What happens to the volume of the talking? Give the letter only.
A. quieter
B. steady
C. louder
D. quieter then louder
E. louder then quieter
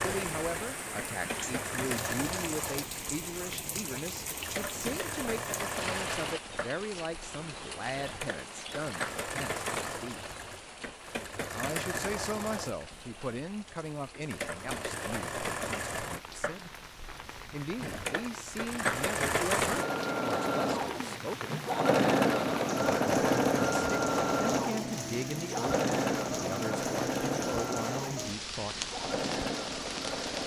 B.